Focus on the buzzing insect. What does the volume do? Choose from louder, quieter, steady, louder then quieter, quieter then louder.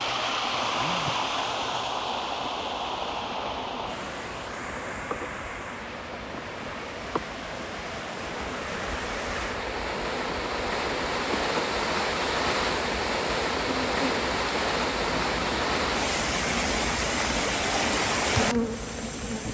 louder.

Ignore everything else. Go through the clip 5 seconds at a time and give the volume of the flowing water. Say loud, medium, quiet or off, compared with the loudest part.
loud, medium, loud, loud.